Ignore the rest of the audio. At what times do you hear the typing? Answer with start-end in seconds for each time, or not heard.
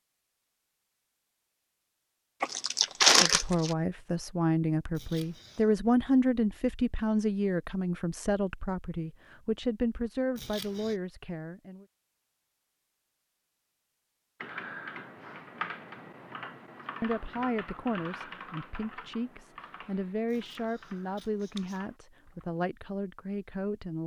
14.4-22.6.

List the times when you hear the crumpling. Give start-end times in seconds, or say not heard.
2.4-3.8.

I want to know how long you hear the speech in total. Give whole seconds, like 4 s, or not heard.
16 s.